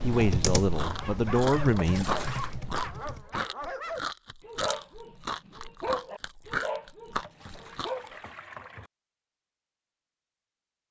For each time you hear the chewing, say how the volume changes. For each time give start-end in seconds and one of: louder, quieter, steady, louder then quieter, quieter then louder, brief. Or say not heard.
0.1-8.1 steady.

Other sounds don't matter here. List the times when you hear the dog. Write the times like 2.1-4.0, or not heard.
0.8-8.2.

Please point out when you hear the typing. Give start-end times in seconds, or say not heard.
0.0-3.3.